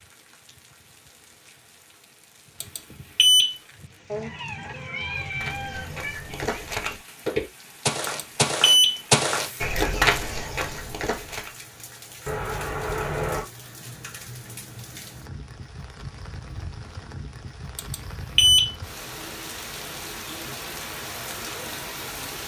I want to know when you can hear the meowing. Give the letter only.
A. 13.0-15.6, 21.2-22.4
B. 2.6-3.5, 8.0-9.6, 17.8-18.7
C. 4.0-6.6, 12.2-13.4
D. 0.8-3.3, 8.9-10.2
C.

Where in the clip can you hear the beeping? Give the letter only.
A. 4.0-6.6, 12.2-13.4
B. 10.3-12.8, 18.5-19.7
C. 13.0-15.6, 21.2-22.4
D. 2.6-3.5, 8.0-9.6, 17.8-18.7
D.